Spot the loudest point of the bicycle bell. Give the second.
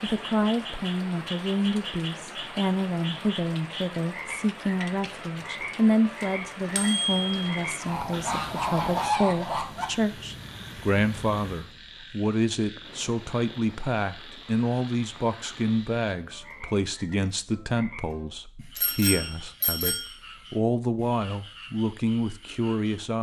7 s.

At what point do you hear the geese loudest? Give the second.
9 s.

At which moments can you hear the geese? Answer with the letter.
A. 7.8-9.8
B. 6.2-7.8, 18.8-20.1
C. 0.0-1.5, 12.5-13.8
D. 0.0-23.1
A.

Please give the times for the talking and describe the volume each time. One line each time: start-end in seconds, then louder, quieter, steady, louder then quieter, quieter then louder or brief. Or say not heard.
0.0-23.1 steady.